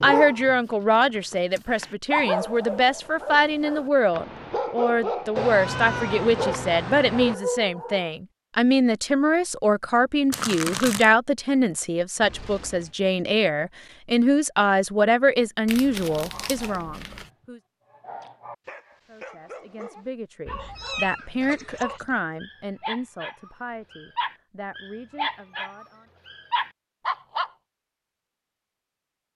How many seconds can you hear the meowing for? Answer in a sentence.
The meowing can be heard for 4 seconds in total.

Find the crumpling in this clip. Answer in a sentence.
The crumpling can be heard from 10.3 to 11.1 s and from 15.7 to 17.3 s.